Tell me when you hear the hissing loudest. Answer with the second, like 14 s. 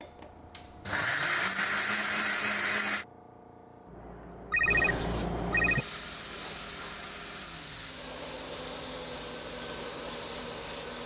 5 s.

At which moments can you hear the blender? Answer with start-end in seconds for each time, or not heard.
0.0-3.0, 5.6-11.0.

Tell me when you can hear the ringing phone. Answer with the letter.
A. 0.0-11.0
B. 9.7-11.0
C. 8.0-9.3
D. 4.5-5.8
D.